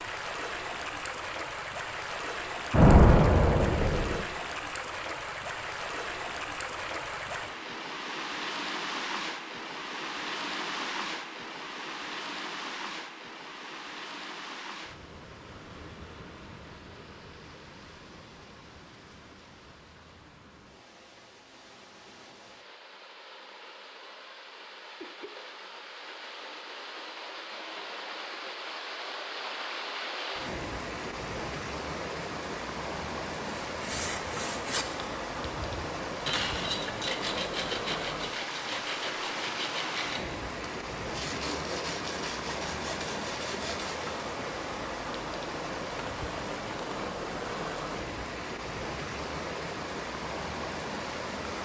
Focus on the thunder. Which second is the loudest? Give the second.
3 s.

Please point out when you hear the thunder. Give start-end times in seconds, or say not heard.
2.7-4.2.